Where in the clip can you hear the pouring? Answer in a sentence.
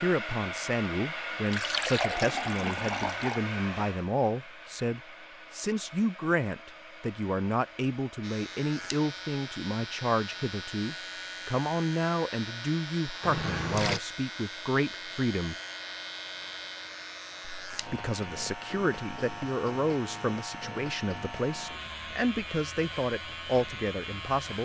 You can hear the pouring from 1.5 to 3.4 s and from 13.2 to 14.0 s.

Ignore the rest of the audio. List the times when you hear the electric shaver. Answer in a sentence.
The electric shaver can be heard from 8.2 to 24.6 s.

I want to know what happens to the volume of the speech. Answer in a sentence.
The volume of the speech stays about the same.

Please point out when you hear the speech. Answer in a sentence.
The speech can be heard from 0.0 to 15.6 s and from 17.7 to 24.6 s.